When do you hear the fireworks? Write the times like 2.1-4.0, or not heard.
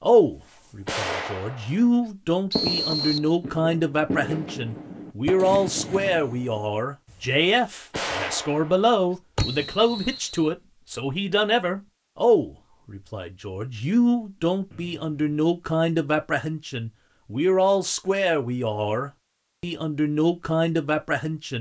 0.5-9.9.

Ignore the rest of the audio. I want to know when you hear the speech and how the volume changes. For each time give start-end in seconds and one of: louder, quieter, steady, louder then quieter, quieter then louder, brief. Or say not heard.
0.0-21.5 steady.